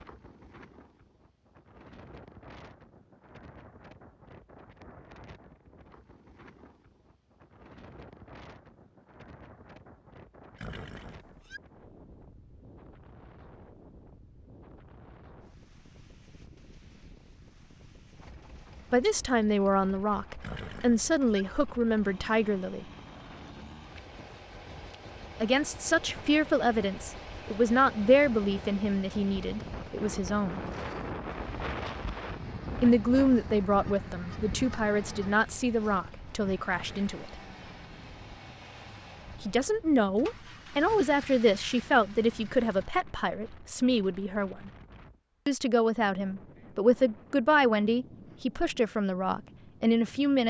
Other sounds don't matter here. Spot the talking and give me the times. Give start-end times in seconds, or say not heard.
18.9-22.9, 25.4-30.6, 32.8-37.4, 39.4-44.7, 45.5-50.4.